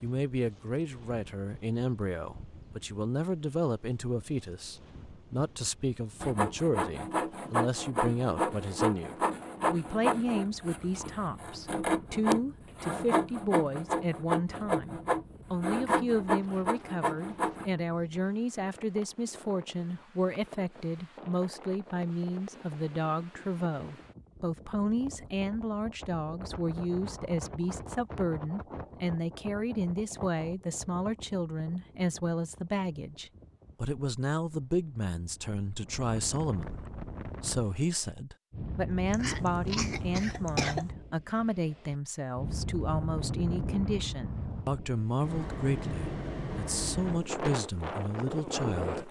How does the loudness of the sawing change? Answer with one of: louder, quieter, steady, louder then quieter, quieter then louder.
steady.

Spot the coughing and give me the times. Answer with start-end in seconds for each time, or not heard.
39.1-40.9.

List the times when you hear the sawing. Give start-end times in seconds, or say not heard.
6.2-17.7.